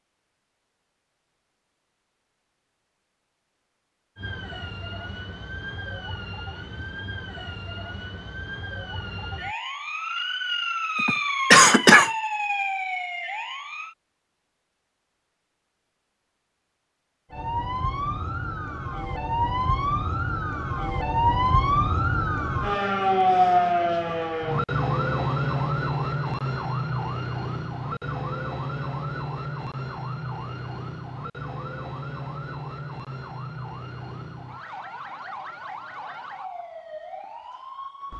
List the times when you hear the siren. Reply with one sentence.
You can hear the siren from 4.2 to 13.9 s and from 17.3 to 38.1 s.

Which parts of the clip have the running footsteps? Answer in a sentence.
The running footsteps can't be heard in this clip.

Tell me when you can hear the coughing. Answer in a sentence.
You can hear the coughing from 10.9 to 12.1 s.